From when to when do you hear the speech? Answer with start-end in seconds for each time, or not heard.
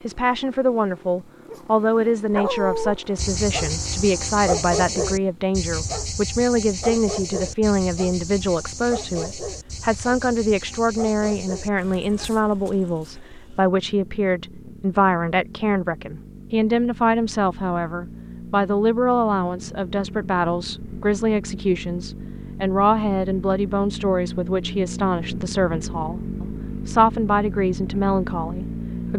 0.0-29.1.